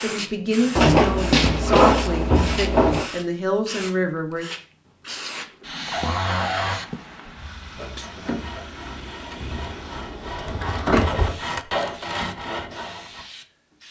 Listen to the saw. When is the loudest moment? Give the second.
11 s.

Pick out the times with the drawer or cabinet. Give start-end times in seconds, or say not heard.
0.8-3.1, 5.9-6.8, 10.2-11.2.